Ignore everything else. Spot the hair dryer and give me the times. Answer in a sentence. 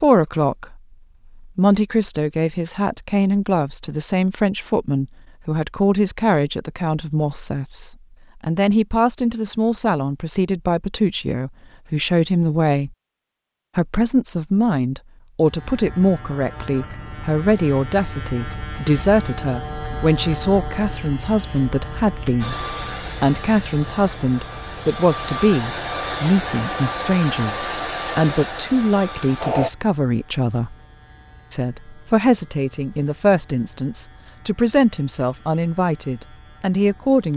You can hear the hair dryer from 22.4 to 29.7 s.